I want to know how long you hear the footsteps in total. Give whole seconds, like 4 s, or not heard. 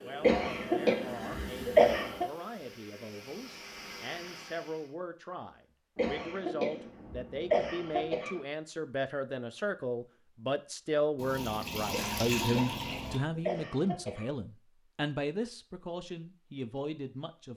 not heard.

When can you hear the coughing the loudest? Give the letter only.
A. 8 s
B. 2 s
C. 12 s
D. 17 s
B.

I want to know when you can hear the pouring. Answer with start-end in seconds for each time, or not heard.
11.2-13.2.